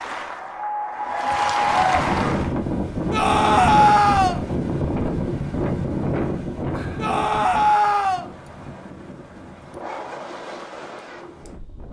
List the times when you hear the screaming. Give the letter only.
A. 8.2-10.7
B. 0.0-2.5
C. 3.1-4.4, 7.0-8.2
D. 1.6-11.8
C.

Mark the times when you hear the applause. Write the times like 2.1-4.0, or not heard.
0.0-2.5.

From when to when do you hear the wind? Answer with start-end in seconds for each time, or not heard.
1.6-11.8.